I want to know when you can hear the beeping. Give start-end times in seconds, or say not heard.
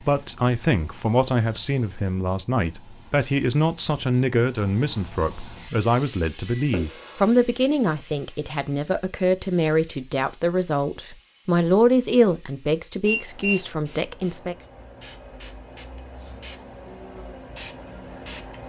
6.5-7.2, 13.1-13.7.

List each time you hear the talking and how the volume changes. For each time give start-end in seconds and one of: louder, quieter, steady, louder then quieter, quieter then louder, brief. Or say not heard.
0.1-14.6 steady.